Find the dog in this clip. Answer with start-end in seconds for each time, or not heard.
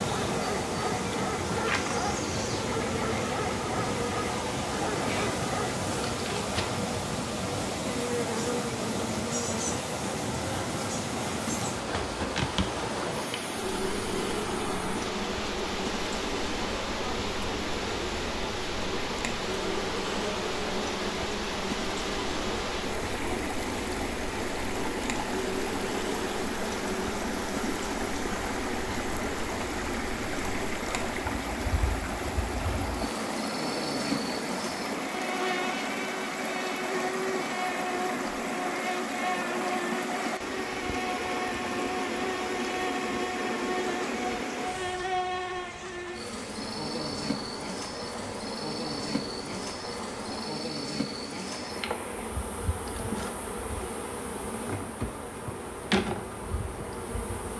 0.0-5.8.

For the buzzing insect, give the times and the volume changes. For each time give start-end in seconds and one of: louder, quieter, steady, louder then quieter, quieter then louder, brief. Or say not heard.
0.0-57.5 steady.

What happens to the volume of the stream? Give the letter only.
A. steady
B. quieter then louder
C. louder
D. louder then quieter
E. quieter
E.